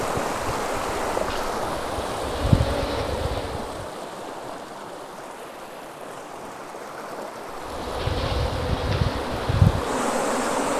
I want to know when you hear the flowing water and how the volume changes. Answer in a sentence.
You can hear the flowing water from 0.0 to 10.7 s, getting quieter then louder.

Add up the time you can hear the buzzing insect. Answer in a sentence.
You can hear the buzzing insect for 7 seconds altogether.